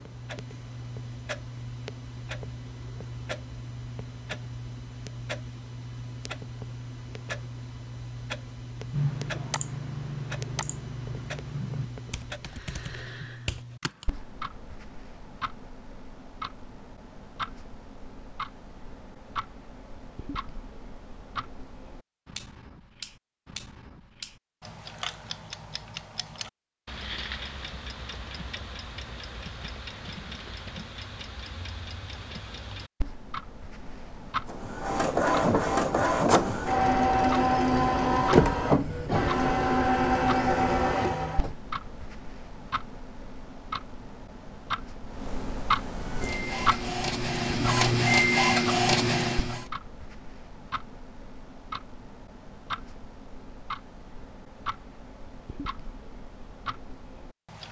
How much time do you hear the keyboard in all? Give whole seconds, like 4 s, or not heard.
5 s.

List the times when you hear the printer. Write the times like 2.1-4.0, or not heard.
34.5-41.5, 45.9-49.6.